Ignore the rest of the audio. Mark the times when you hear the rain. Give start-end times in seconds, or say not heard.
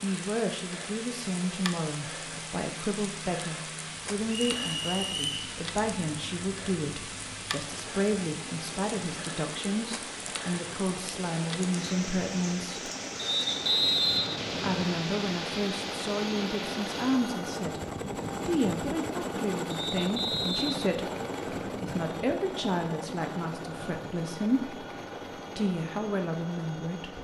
0.0-17.4.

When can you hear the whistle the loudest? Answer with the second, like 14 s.
14 s.